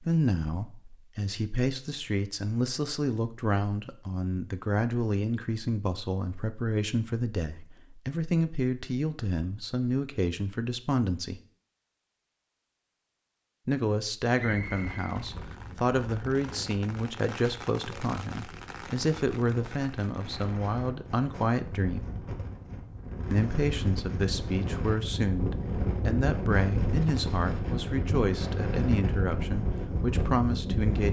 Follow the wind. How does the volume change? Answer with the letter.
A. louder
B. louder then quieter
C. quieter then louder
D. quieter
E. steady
A.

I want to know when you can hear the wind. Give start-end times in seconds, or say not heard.
14.7-31.0.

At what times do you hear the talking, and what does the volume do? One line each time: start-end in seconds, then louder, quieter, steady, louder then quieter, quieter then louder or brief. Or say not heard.
0.0-11.4 steady
13.7-22.1 steady
23.3-31.0 steady.